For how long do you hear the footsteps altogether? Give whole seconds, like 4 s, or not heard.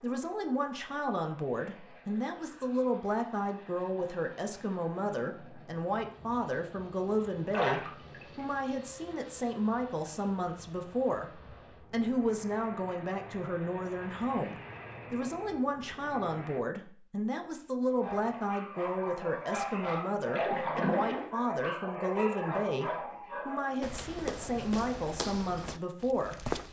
3 s.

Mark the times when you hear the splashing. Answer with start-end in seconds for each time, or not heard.
7.5-8.4, 20.3-21.3.